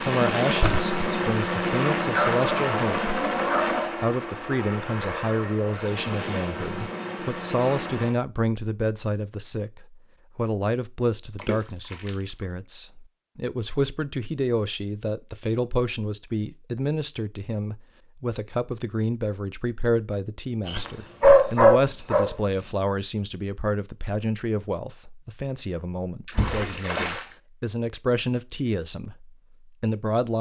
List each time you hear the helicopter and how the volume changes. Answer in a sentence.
You can hear the helicopter from 0.0 to 8.2 s, getting quieter.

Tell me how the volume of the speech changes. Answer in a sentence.
The loudness of the speech stays about the same.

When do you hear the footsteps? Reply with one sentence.
You can't hear the footsteps here.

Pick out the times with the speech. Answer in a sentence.
The speech can be heard from 0.0 to 3.1 s and from 4.0 to 30.3 s.